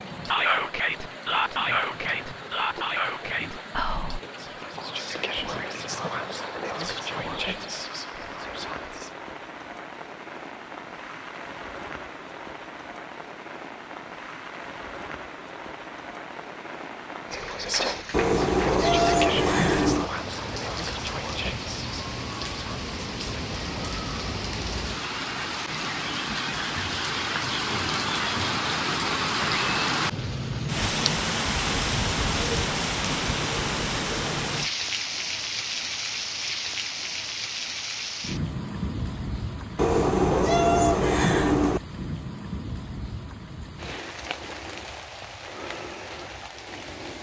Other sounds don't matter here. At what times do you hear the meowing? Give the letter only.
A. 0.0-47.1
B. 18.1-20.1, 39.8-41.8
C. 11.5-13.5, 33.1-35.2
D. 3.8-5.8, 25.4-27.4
B.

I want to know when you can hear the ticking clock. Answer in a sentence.
The ticking clock can't be heard in this clip.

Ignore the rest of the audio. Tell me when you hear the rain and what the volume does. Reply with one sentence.
You can hear the rain from 0.0 to 47.1 s, getting louder then quieter.